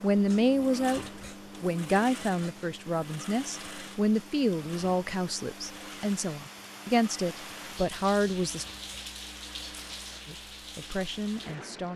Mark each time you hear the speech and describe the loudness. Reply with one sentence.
You can hear the speech from 0.0 to 8.7 s, getting quieter then louder; and briefly from 10.2 to 11.9 s.